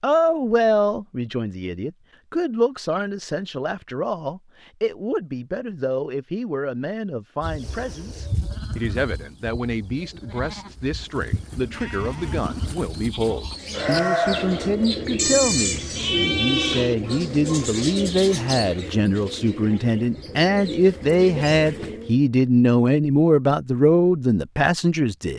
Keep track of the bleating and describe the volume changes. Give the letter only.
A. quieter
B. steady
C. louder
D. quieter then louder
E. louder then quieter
D.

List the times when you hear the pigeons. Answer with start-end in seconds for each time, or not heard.
13.4-22.2.